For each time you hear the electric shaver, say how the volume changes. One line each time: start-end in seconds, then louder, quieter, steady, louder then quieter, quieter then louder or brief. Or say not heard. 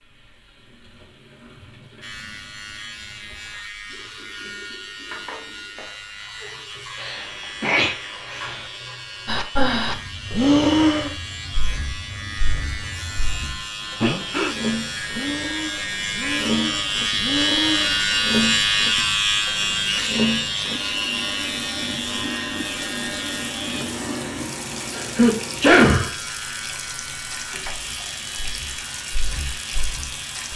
2.0-30.5 louder then quieter.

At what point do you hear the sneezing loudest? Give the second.
26 s.